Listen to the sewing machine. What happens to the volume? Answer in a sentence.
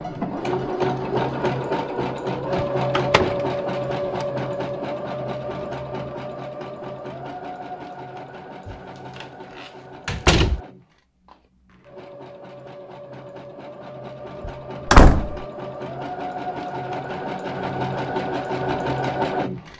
The loudness of the sewing machine goes down, then up.